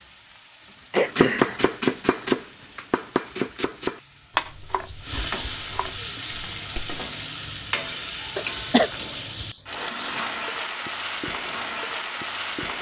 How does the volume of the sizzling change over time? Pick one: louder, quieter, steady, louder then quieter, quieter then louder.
louder.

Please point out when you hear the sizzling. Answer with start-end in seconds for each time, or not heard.
0.0-12.7.